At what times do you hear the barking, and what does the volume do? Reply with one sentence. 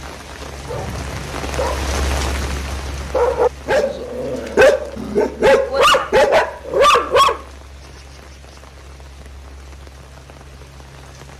The barking can be heard from 0.7 to 7.4 s, getting louder.